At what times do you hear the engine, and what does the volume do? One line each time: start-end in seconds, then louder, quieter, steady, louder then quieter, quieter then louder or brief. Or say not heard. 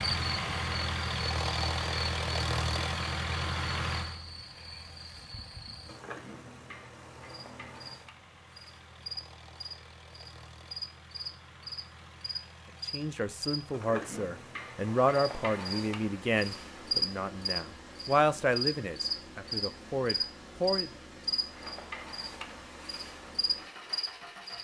0.0-24.6 quieter.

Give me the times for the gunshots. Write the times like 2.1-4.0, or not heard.
not heard.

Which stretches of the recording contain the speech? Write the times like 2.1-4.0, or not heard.
12.8-20.9.